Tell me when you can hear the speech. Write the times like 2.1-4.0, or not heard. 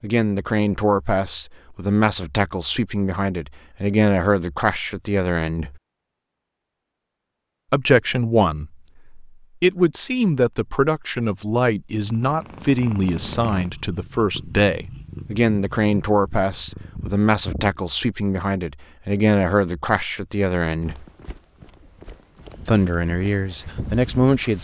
0.0-5.8, 7.7-21.1, 22.6-24.5.